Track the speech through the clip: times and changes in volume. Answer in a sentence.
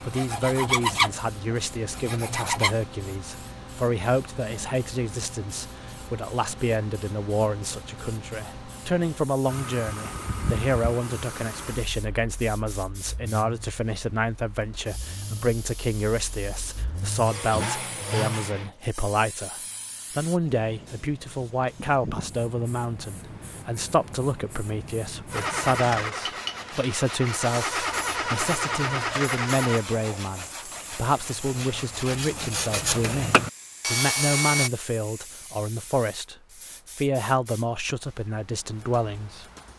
You can hear the speech from 0.1 to 36.4 s, at a steady volume; and briefly from 37.0 to 39.5 s.